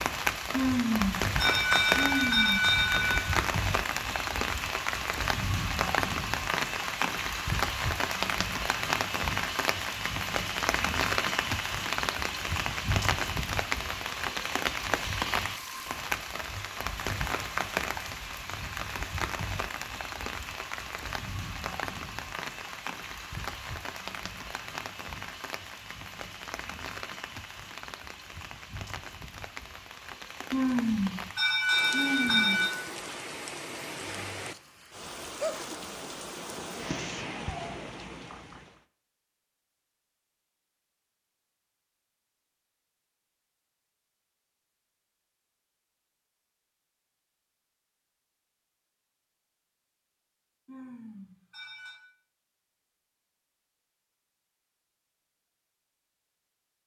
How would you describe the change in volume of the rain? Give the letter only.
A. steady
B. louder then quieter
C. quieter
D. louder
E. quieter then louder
C.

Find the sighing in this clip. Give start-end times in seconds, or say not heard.
0.5-3.3, 30.5-32.7, 50.6-52.0.